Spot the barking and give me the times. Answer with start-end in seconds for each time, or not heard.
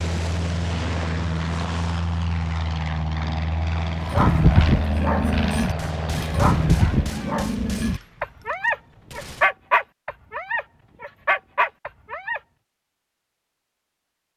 4.0-12.4.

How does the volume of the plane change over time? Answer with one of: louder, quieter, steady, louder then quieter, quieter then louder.
steady.